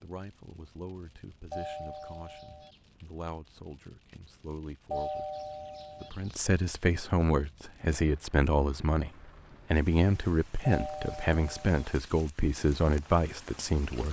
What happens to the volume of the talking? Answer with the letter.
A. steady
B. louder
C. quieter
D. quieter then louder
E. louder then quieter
B.